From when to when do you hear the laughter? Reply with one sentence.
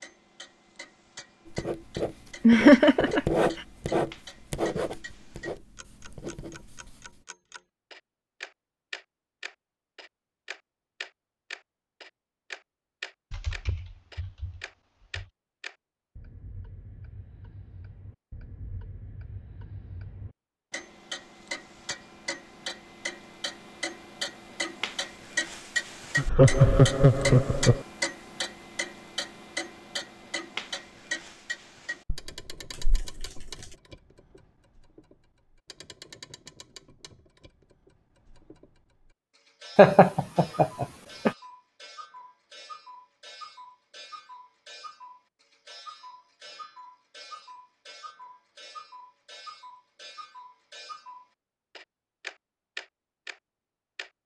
The laughter can be heard from 2.5 to 3.2 s, from 26.1 to 27.9 s and from 39.8 to 41.3 s.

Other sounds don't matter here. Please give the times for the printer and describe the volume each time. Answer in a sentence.
You can't hear the printer here.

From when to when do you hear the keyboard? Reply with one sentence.
You can hear the keyboard from 13.3 to 15.2 s and from 32.0 to 33.8 s.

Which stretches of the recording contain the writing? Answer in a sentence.
The writing can be heard from 1.4 to 7.2 s.